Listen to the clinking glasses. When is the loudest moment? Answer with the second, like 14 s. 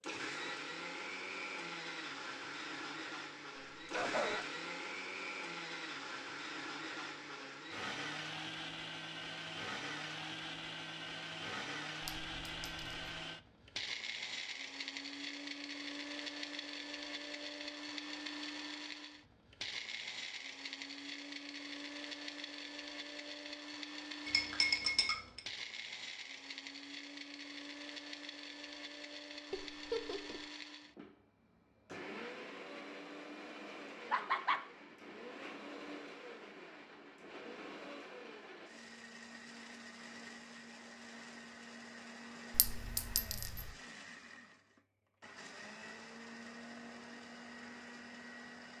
25 s.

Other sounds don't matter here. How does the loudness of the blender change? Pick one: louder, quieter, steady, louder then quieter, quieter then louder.
quieter.